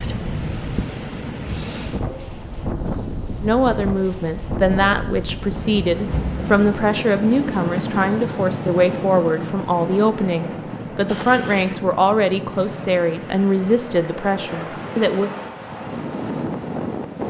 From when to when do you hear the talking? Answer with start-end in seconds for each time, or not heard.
3.4-15.3.